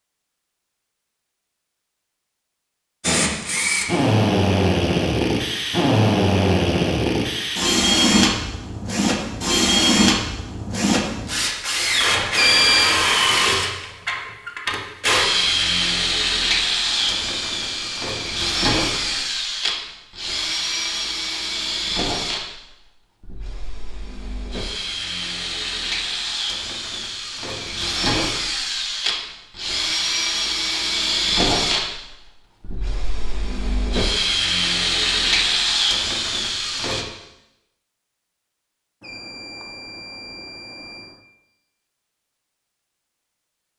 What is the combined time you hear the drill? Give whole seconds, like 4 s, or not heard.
34 s.